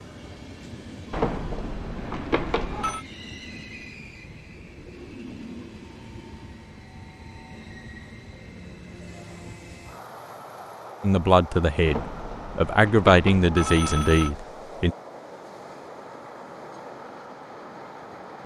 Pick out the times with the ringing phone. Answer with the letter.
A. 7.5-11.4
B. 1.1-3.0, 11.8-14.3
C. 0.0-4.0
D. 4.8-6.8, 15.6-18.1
B.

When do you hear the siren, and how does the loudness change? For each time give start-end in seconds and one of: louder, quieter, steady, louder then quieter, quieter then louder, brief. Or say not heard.
not heard.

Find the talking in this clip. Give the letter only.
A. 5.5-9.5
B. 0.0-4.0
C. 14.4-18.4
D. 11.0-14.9
D.